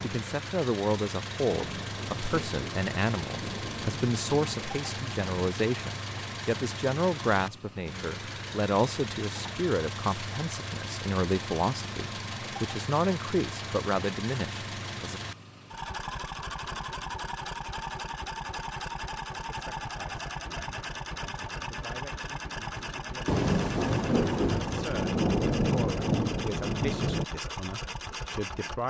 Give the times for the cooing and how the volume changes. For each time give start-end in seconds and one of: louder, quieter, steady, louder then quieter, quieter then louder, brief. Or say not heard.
not heard.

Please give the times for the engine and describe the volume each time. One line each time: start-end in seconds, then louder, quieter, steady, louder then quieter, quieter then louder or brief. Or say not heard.
0.0-28.8 steady.